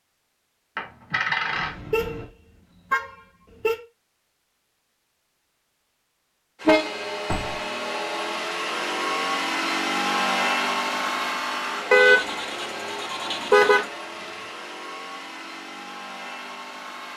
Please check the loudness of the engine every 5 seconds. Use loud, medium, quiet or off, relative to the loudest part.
off, loud, loud, medium.